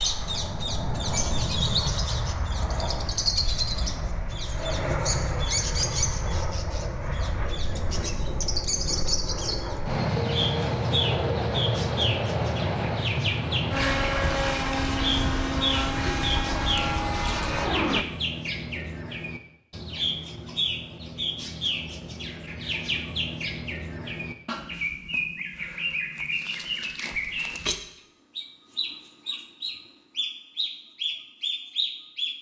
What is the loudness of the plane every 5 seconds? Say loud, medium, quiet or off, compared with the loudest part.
medium, medium, loud, loud, off, off, off.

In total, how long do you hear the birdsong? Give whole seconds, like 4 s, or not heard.
32 s.